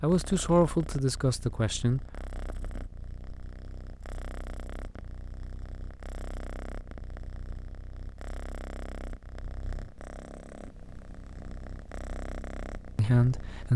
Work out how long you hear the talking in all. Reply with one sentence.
You can hear the talking for 3 seconds altogether.